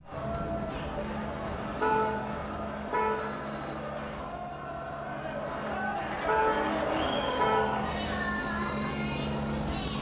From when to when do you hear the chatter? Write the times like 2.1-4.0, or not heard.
0.0-9.9.